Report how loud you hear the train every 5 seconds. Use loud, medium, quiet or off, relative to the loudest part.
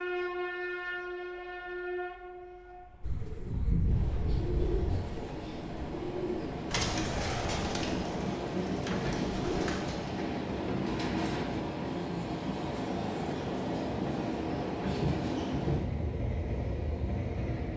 medium, loud, loud, loud.